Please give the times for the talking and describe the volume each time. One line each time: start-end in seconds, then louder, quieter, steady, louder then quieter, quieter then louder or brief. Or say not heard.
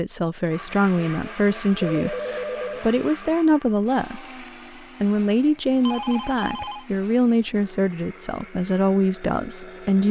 0.0-10.0 steady.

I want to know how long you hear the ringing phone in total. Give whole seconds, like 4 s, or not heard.
2 s.